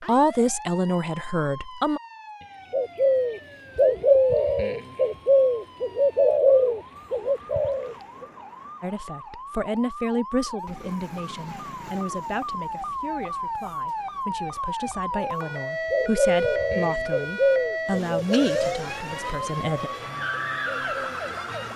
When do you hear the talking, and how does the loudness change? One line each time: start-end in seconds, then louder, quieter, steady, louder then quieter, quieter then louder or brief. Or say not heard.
0.1-2.0 brief
8.8-19.9 quieter then louder.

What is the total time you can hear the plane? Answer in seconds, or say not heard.
not heard.